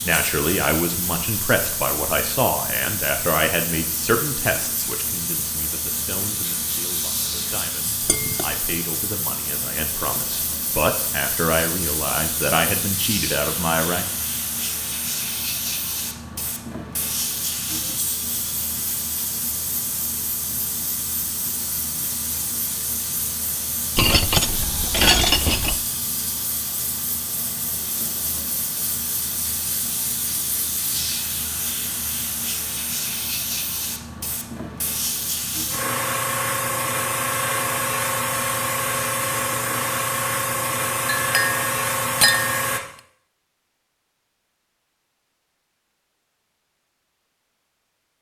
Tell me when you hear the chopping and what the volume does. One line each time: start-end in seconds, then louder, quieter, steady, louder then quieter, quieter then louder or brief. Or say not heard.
not heard.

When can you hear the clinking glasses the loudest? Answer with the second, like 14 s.
25 s.